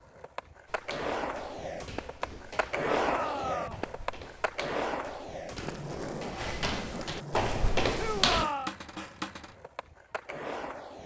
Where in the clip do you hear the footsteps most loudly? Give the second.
8 s.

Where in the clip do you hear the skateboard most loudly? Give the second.
3 s.